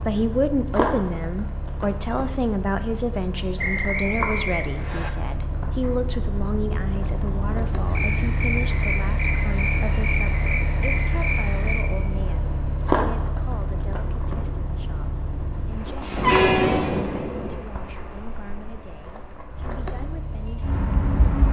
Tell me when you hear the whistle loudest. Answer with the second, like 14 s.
4 s.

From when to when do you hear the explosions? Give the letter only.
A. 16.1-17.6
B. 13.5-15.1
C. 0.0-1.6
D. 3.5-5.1
A.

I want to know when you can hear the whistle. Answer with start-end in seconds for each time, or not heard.
3.5-5.1.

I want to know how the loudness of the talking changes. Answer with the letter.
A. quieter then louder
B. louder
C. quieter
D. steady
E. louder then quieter
C.